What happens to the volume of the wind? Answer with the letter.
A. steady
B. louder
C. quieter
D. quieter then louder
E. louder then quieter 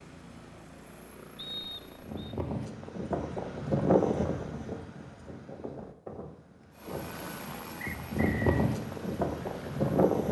D.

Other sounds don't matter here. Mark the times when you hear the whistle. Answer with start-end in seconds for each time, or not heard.
1.4-2.4, 7.8-8.7.